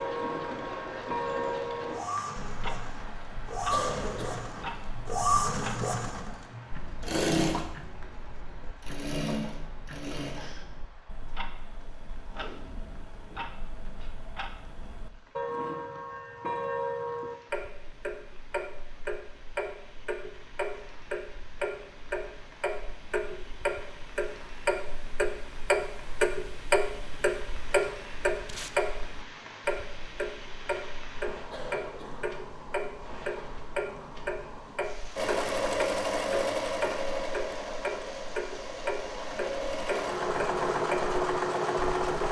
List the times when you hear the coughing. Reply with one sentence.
The coughing can be heard from 3.7 to 4.5 s and from 31.5 to 32.4 s.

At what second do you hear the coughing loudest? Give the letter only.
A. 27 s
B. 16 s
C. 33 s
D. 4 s
D.